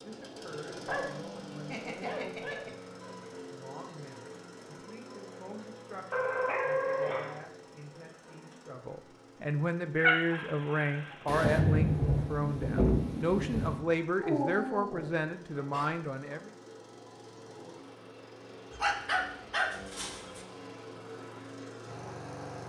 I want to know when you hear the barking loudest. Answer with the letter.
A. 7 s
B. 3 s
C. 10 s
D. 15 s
C.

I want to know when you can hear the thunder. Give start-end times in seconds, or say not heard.
11.2-13.8.